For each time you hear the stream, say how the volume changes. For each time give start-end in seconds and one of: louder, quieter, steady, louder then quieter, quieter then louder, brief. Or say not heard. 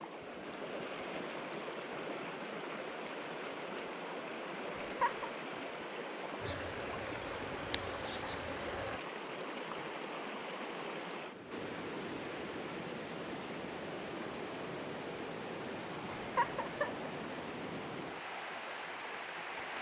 0.0-19.7 steady.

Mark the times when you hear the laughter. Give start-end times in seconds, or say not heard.
4.8-5.3, 16.1-17.1.